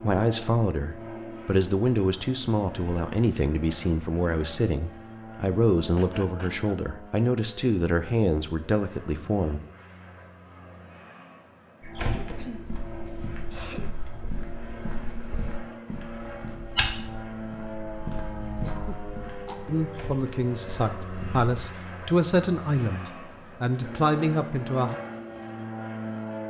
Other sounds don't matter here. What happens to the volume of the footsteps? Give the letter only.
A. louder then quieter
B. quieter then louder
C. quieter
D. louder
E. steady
A.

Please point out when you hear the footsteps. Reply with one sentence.
The footsteps can be heard from 11.8 to 21.4 s.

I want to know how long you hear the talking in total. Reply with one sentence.
You can hear the talking for 15 seconds altogether.